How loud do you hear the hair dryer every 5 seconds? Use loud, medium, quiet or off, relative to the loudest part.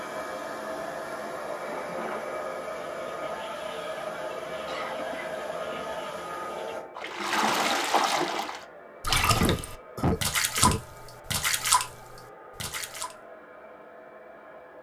loud, loud, quiet.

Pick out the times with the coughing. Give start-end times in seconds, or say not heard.
4.7-5.4, 9.3-10.8.